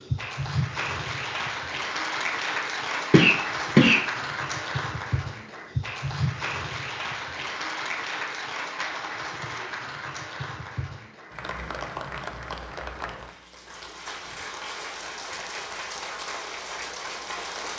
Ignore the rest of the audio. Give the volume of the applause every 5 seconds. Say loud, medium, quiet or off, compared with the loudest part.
loud, loud, medium, medium.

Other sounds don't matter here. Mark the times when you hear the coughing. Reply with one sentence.
You can hear the coughing from 3.1 to 4.0 s.